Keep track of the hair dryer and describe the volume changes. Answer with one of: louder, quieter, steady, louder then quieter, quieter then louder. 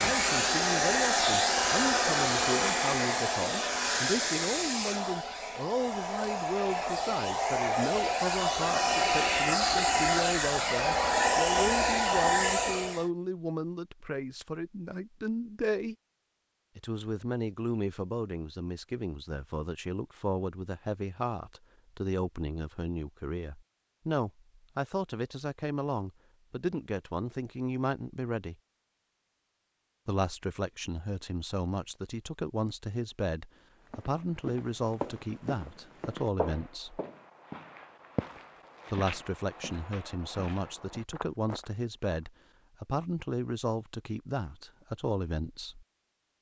quieter then louder.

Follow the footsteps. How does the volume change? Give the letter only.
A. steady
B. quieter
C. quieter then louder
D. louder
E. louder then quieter
B.